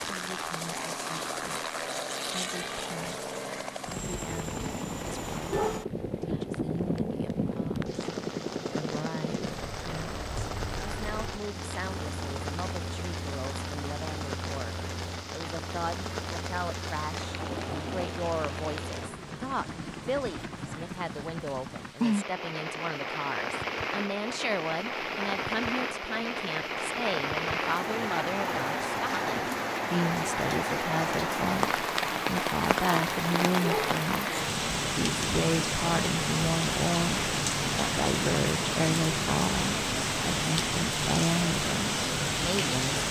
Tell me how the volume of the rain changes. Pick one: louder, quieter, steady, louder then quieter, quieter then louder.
louder.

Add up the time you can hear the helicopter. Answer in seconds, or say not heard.
22 s.